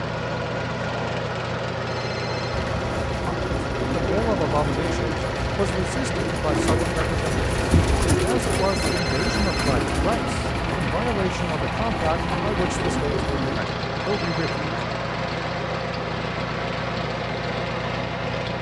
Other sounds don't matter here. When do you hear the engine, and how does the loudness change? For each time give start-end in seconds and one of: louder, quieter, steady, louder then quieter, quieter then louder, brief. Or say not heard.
0.0-18.5 steady.